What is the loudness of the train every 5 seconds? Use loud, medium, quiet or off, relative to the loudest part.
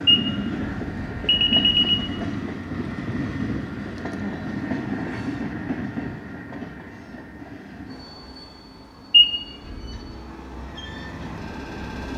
loud, medium, medium.